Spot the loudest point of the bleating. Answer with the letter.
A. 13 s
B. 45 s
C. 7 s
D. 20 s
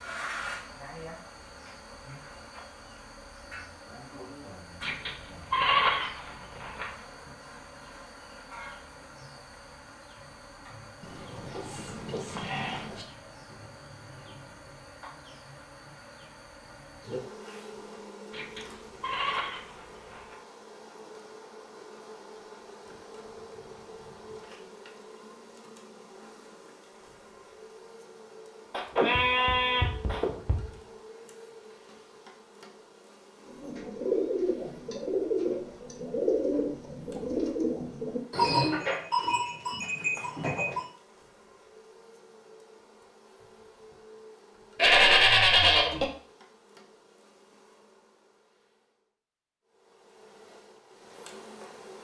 B.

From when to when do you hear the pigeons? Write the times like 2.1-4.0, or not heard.
33.5-38.9.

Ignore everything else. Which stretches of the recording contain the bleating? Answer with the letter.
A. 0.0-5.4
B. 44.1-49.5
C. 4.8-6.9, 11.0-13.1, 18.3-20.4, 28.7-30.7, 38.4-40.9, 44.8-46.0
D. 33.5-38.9
C.